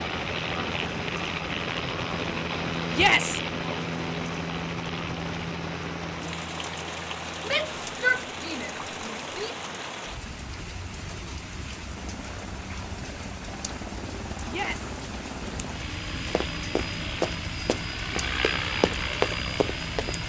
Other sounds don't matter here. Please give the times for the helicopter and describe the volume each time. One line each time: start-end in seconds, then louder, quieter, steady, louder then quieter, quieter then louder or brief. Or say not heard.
0.0-20.2 quieter then louder.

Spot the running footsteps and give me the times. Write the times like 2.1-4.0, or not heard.
16.2-20.1.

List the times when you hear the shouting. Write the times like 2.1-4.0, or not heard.
2.9-3.4, 7.4-9.6, 14.4-14.9.